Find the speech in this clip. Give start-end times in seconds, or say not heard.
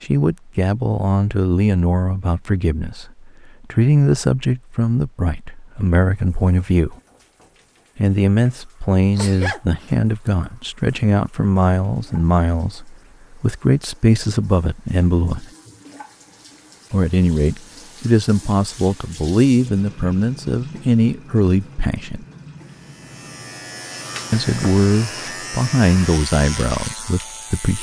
0.0-7.0, 8.0-15.5, 16.9-22.2, 24.3-27.7.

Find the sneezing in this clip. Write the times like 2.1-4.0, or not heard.
9.1-10.5.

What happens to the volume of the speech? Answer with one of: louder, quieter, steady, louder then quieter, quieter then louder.
steady.